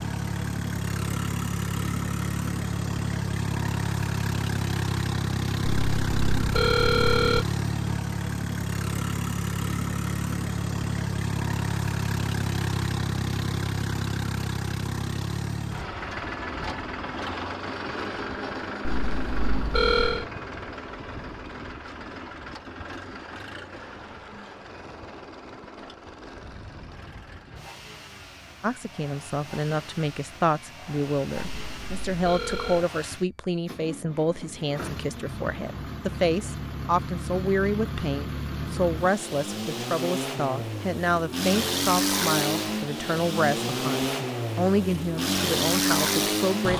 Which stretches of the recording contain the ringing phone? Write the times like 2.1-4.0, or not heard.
5.7-7.5, 18.8-20.2, 31.4-32.9.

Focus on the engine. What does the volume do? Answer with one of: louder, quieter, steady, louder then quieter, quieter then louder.
quieter then louder.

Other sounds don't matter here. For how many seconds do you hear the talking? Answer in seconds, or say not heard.
18 s.